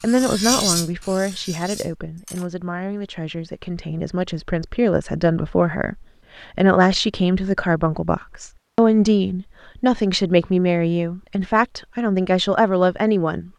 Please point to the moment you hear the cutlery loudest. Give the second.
1 s.